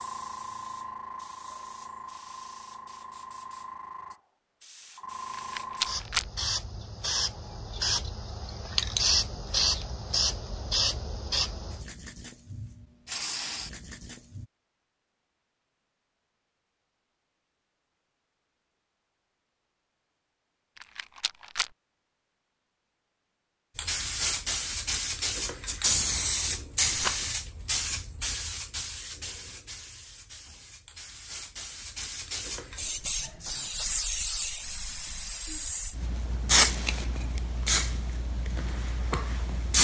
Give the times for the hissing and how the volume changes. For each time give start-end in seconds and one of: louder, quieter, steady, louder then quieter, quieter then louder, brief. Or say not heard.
0.0-14.4 louder then quieter
23.8-39.7 quieter then louder.